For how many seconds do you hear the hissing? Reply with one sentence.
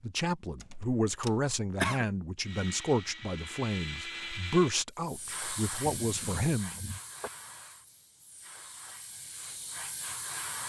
The hissing can be heard for 6 seconds in total.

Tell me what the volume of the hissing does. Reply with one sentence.
The volume of the hissing goes down, then up.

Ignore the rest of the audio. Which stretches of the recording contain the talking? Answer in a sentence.
The talking can be heard from 0.0 to 6.8 s.